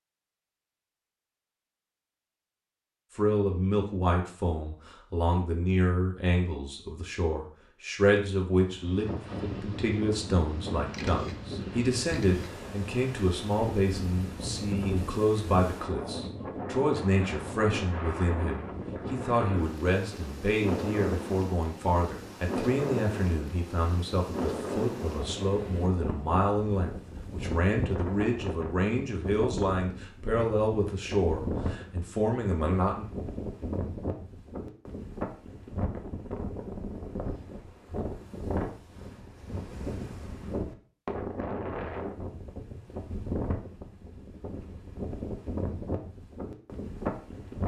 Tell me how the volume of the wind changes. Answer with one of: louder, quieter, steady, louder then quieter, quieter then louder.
steady.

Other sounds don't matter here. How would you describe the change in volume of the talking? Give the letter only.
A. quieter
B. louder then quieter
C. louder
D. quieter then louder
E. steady
E.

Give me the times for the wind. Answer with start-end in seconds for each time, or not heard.
8.6-47.6.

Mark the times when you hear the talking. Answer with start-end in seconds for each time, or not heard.
3.1-33.0.